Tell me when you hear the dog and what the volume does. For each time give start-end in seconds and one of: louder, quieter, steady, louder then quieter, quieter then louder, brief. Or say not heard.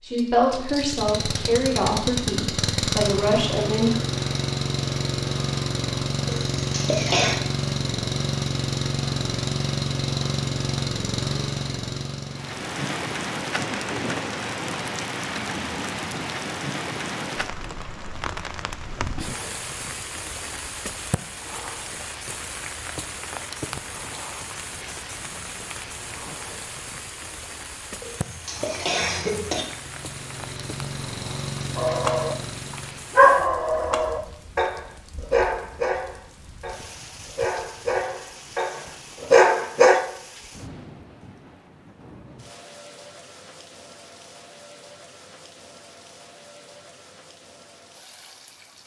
31.8-40.0 quieter then louder.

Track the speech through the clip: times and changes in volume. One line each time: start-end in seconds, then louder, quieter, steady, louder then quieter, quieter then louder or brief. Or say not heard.
0.0-4.0 quieter then louder.